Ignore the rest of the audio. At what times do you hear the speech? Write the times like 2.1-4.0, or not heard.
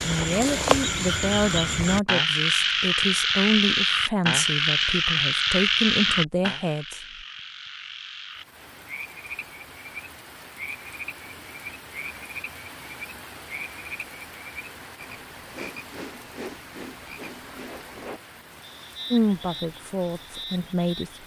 0.0-7.0, 19.1-21.2.